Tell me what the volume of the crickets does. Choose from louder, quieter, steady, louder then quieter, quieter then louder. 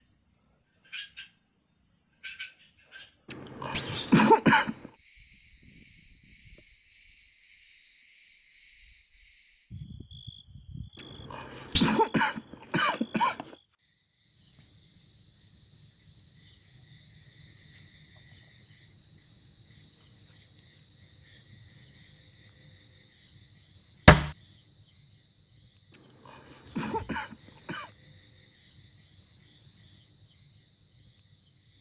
louder.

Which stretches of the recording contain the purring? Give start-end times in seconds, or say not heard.
not heard.